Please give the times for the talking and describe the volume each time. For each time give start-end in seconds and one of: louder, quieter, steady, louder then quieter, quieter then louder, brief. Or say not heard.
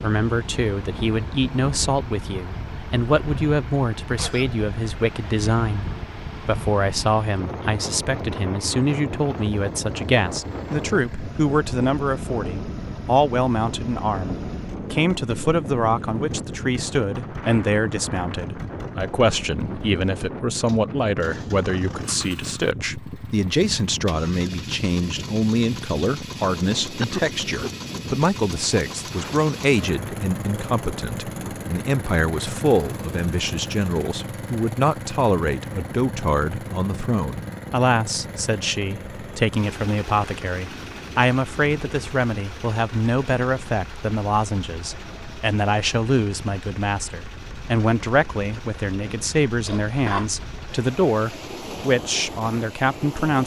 0.0-53.4 steady.